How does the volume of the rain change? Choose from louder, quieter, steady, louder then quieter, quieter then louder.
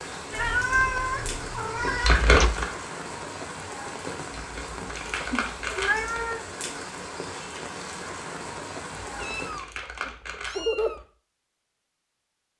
steady.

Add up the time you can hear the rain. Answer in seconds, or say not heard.
10 s.